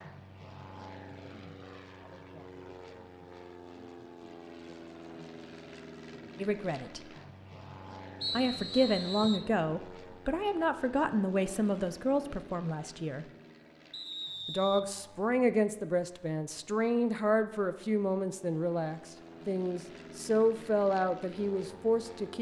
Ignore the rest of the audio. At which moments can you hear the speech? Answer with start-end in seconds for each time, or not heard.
6.3-7.0, 8.3-13.2, 14.4-22.3.